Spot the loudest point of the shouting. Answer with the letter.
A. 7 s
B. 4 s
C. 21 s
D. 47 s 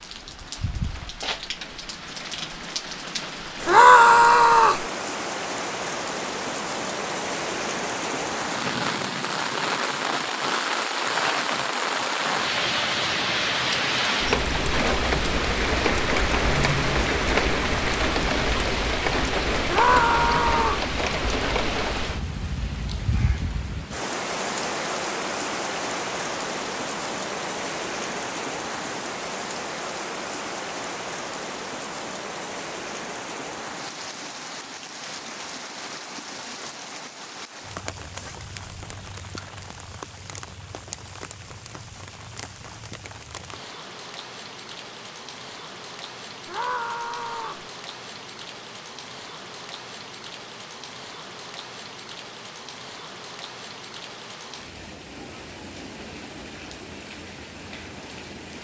B.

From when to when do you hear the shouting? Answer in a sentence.
You can hear the shouting from 3.6 to 4.8 s, from 19.6 to 20.9 s and from 46.5 to 47.6 s.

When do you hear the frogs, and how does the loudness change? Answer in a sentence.
You can't hear the frogs here.